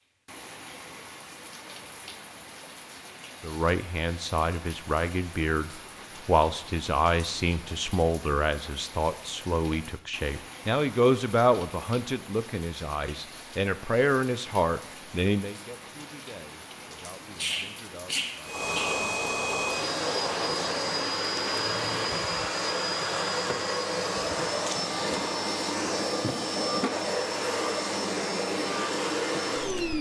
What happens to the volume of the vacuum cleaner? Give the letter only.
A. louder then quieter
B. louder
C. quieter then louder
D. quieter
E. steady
E.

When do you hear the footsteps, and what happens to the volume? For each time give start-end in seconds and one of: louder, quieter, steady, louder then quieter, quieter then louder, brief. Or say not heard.
not heard.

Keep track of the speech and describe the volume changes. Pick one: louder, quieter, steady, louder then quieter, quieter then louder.
quieter.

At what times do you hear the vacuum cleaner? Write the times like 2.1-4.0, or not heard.
18.4-29.9.